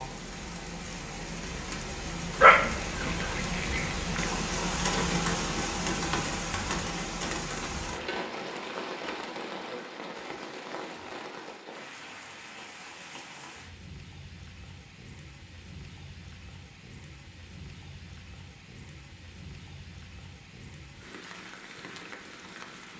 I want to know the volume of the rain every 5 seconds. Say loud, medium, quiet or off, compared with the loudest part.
loud, loud, medium, quiet, quiet.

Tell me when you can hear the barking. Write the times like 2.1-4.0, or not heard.
2.4-4.3.